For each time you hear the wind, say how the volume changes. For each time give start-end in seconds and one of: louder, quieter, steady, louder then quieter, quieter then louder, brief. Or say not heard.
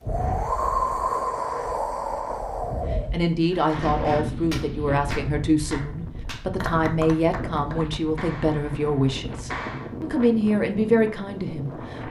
0.0-12.0 quieter.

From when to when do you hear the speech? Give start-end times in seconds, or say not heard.
3.1-12.0.